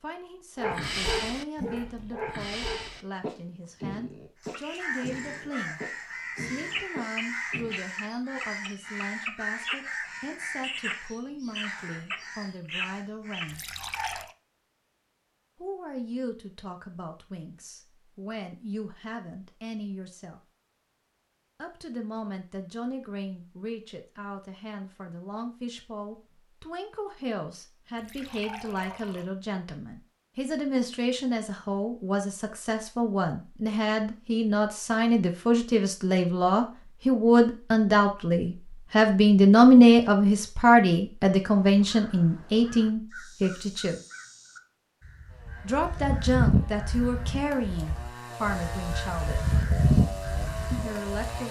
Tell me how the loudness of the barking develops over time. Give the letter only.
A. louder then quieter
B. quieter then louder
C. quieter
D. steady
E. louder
C.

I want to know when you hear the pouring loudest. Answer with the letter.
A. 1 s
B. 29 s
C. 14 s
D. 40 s
C.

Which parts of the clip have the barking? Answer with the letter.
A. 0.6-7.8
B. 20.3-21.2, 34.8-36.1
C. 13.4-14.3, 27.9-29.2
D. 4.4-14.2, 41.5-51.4
A.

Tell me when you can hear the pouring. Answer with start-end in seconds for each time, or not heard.
13.4-14.3, 27.9-29.2.